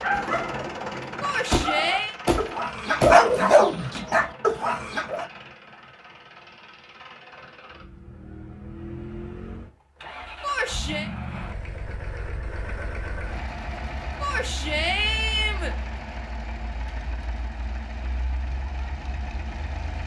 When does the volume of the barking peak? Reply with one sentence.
The loudest moment of the barking is at 3 seconds.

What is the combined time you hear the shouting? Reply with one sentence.
The shouting can be heard for 3 seconds in total.